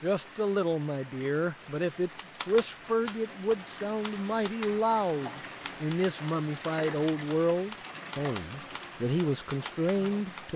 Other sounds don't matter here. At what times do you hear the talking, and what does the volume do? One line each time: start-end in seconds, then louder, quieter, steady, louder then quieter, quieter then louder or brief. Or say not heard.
0.0-10.5 steady.